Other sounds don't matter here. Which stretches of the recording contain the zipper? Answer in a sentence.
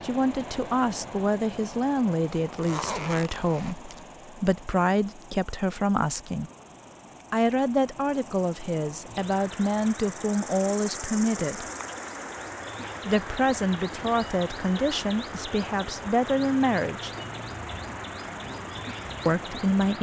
You can hear the zipper from 2.5 to 4.0 s.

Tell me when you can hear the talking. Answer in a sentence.
You can hear the talking from 0.0 to 6.5 s, from 7.3 to 11.7 s, from 13.1 to 17.1 s and from 19.2 to 19.9 s.